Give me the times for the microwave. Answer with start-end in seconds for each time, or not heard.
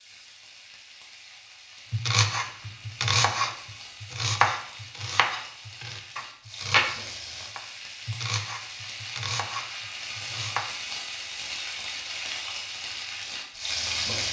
not heard.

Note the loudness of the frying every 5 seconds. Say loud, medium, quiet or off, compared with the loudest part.
quiet, medium, loud.